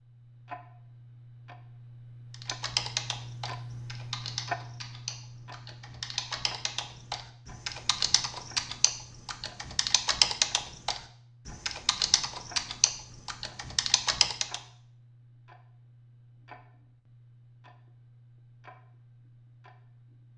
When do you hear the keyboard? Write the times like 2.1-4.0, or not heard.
2.3-14.6.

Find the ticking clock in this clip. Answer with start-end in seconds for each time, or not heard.
0.0-20.3.